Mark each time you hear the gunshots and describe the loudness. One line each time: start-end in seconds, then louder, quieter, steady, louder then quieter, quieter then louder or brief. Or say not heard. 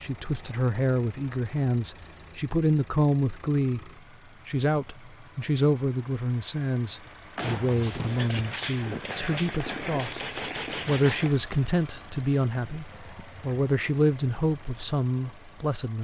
7.3-11.3 steady.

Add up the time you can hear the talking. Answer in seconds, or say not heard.
16 s.